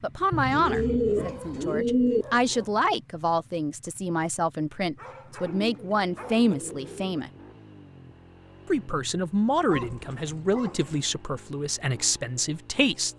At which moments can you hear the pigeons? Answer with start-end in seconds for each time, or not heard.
0.3-2.2, 5.4-7.2, 9.7-11.1.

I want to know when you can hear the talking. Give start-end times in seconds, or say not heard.
0.0-7.3, 8.7-13.1.